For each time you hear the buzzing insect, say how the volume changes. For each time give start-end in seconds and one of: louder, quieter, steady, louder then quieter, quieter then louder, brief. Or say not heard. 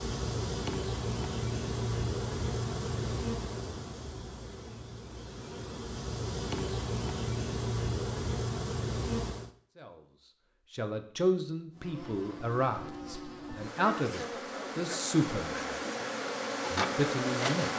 0.0-9.5 quieter then louder
11.7-17.7 louder.